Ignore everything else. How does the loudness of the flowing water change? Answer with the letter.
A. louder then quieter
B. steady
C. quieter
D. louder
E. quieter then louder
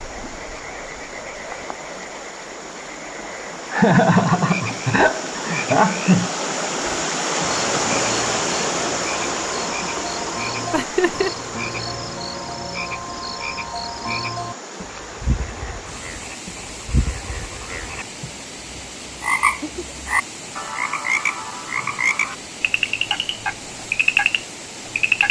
A.